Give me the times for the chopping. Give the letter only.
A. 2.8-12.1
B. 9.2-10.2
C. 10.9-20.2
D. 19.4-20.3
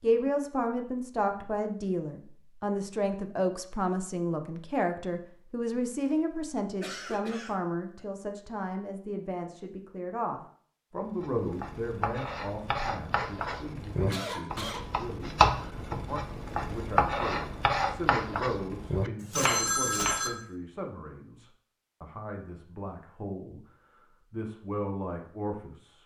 C.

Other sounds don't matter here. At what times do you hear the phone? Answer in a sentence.
You can hear the phone from 19.4 to 20.3 s.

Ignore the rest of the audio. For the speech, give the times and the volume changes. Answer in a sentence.
You can hear the speech from 0.0 to 23.6 s, getting quieter; and briefly from 24.3 to 26.0 s.